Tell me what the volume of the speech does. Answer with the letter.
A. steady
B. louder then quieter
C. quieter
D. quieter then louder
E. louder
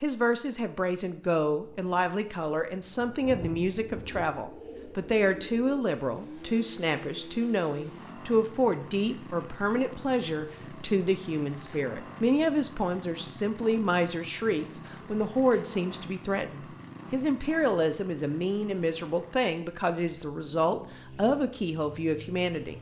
A.